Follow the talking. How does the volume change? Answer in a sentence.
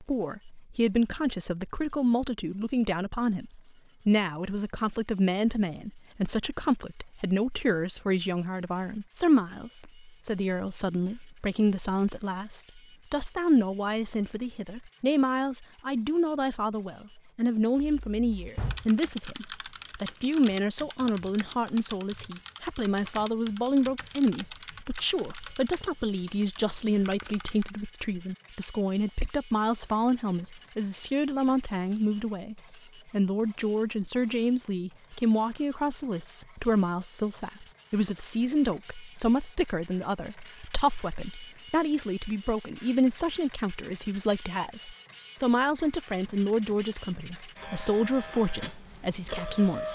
The loudness of the talking stays about the same.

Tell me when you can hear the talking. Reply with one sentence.
You can hear the talking from 0.0 to 49.9 s.